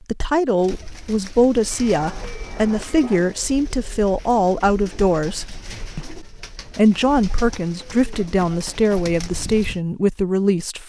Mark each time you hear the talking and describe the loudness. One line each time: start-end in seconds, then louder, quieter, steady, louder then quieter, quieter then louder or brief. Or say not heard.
0.1-10.8 steady.